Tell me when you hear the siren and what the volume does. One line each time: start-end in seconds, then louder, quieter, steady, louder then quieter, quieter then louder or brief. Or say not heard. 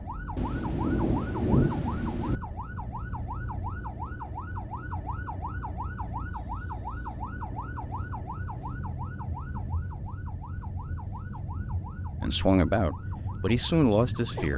0.0-14.5 steady.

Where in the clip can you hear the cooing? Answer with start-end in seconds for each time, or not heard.
not heard.